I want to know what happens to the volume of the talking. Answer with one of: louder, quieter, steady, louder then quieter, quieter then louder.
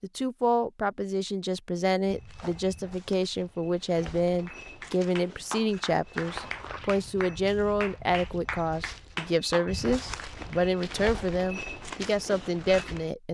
steady.